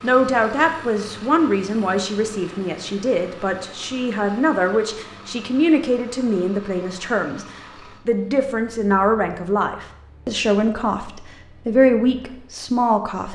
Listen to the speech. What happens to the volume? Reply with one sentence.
The loudness of the speech stays about the same.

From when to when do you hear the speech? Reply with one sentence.
You can hear the speech from 0.0 to 7.5 s and from 8.1 to 13.2 s.